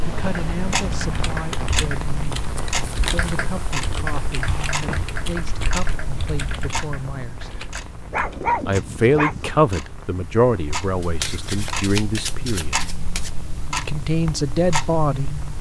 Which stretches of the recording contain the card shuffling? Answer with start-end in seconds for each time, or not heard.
2.6-3.3, 11.0-13.3.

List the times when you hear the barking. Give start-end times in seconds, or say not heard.
8.1-9.7.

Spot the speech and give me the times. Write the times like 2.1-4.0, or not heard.
0.1-7.5, 8.7-12.8, 13.8-15.4.